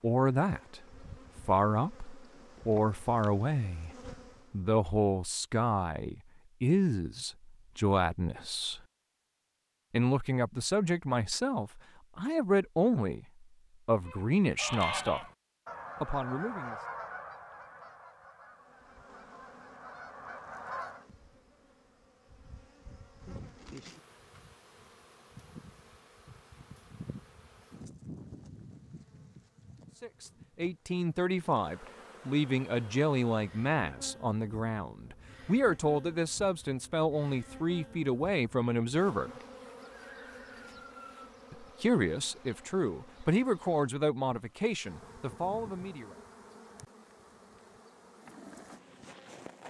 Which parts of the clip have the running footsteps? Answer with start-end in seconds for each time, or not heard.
not heard.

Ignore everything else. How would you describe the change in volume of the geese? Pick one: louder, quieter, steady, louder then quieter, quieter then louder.
quieter then louder.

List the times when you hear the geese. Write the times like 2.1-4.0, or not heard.
14.1-21.1.